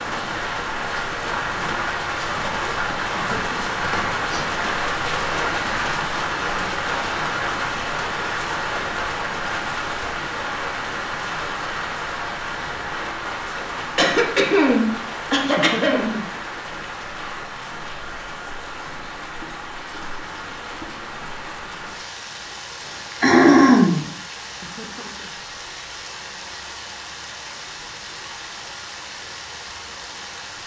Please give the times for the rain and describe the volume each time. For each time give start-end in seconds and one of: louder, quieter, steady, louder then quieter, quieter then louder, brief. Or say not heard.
0.0-30.6 quieter.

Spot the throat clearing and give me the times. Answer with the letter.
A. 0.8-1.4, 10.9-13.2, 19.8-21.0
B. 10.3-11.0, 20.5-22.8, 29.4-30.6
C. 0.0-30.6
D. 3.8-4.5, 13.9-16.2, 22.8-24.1
D.